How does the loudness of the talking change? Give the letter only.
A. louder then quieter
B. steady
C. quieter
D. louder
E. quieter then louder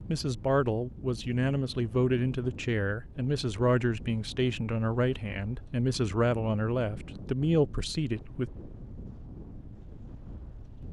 B.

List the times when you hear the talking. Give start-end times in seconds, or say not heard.
0.1-8.5.